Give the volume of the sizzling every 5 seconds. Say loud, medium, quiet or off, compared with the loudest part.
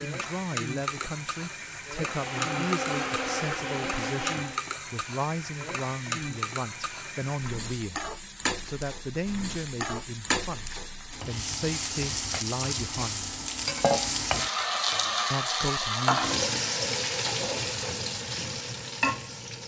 medium, medium, loud, loud.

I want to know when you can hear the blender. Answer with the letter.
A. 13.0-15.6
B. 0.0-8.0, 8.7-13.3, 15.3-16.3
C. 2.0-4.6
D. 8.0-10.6
C.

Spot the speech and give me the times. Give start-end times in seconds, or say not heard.
0.0-8.0, 8.7-13.3, 15.3-16.3.